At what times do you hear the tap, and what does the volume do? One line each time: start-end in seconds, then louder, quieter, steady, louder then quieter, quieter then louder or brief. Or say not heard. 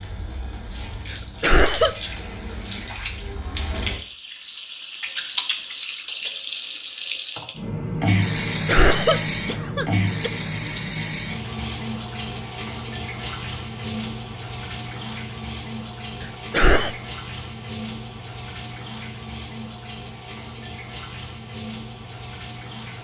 0.0-23.0 louder then quieter.